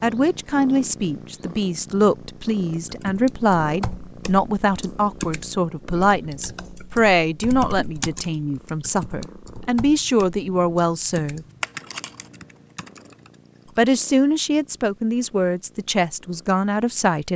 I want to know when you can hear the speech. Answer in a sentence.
The speech can be heard from 0.0 to 11.4 s and from 13.8 to 17.3 s.